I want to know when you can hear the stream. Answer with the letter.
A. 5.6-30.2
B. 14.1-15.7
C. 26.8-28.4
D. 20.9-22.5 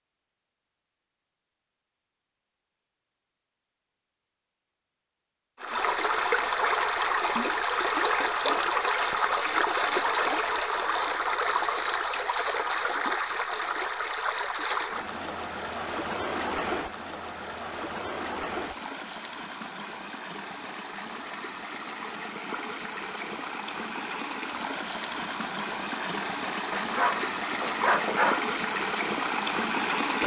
A.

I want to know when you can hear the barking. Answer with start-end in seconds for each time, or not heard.
26.8-28.4.